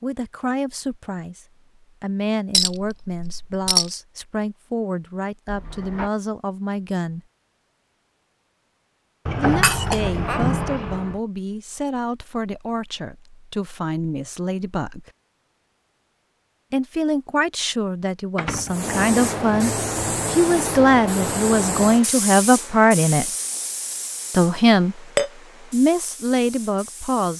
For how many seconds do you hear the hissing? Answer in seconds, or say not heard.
9 s.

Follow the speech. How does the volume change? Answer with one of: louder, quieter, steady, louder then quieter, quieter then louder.
louder.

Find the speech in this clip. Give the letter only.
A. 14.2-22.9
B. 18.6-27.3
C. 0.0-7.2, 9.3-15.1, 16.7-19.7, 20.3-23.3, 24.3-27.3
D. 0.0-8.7
C.